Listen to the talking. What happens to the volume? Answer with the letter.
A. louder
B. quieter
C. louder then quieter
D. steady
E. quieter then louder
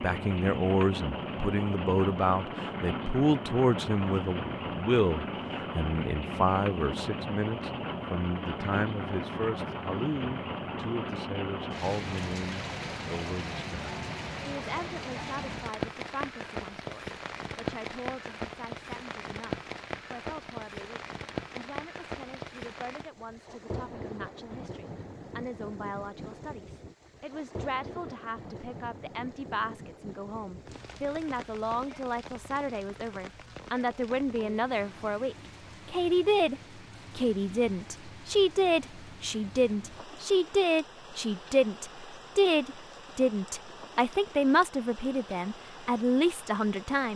E.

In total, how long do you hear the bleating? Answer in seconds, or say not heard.
not heard.